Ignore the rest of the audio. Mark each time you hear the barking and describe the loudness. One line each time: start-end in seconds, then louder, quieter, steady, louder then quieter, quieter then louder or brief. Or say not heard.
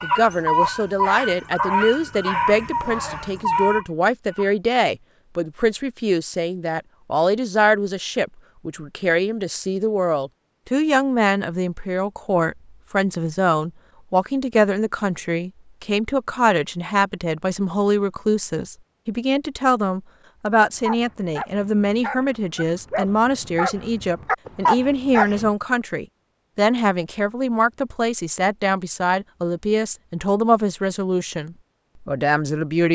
0.0-4.5 quieter then louder
20.6-25.5 louder.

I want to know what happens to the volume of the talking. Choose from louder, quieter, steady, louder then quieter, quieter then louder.
steady.